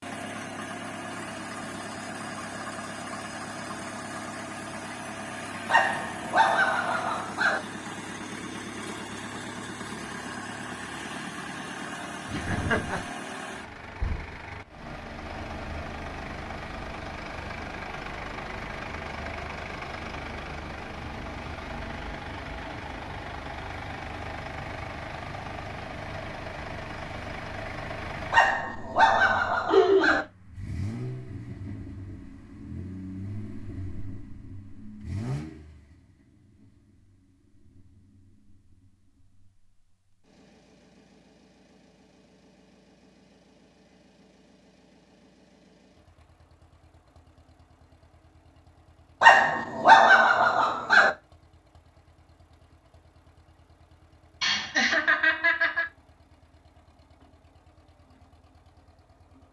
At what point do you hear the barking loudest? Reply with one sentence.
The volume of the barking peaks at 50 seconds.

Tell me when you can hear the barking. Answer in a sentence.
The barking can be heard from 5.7 to 7.6 s, from 28.3 to 30.2 s and from 49.2 to 51.1 s.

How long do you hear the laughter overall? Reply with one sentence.
The laughter can be heard for 3 seconds in total.